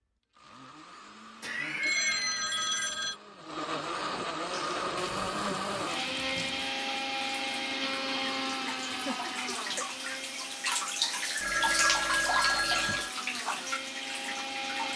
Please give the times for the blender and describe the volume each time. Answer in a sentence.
You can hear the blender from 0.3 to 14.9 s, getting louder then quieter.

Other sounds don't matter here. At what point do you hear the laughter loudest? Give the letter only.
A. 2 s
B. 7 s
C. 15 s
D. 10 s
A.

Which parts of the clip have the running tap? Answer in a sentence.
The running tap can be heard from 4.5 to 14.9 s.